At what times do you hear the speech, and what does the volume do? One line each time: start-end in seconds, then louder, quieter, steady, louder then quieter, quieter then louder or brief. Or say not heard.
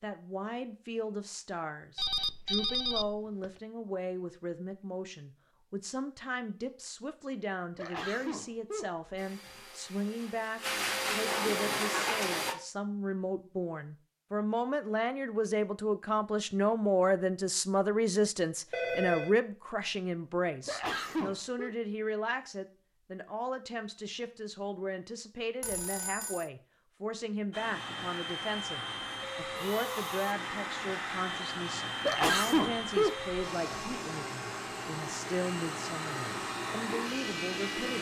0.0-37.9 louder then quieter.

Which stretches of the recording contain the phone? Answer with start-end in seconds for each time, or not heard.
1.9-3.5, 18.7-19.4, 25.6-26.4.